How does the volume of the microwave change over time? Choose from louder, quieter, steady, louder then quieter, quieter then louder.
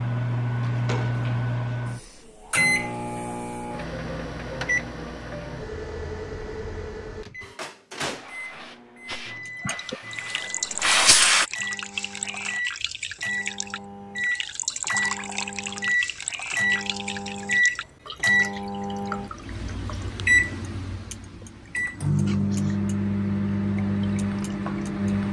quieter then louder.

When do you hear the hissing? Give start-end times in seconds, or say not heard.
8.0-11.4.